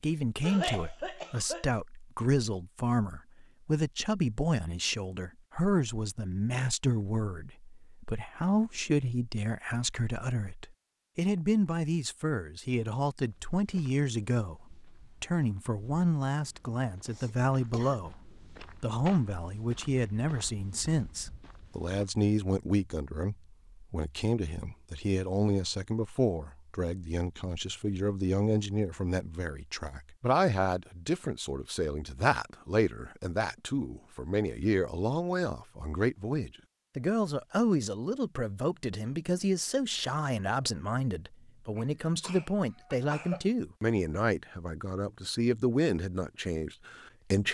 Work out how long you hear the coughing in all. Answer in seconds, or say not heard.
4 s.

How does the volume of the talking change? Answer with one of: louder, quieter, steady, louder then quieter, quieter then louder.
steady.